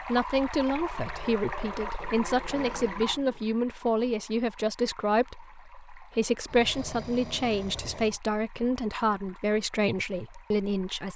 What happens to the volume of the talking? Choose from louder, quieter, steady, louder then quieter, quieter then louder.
steady.